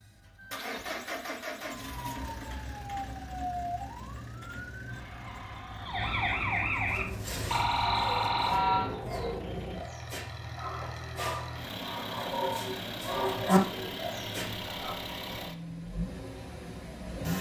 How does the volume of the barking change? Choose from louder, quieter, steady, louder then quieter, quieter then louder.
louder.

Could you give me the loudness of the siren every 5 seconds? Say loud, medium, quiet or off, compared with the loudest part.
medium, loud, off, off.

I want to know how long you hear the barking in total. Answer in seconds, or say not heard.
8 s.